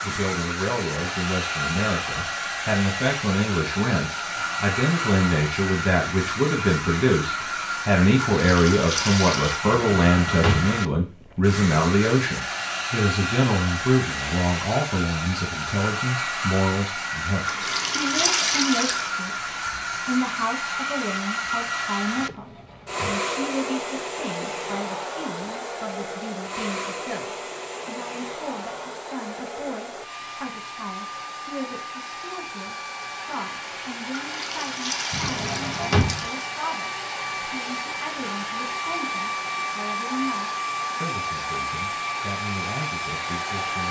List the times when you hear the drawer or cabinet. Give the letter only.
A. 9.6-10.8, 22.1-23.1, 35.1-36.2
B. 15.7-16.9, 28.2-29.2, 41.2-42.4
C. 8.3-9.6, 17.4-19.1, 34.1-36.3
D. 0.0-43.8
A.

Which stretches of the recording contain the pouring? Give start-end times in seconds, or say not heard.
8.3-9.6, 17.4-19.1, 34.1-36.3.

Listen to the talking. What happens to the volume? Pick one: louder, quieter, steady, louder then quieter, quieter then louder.
quieter.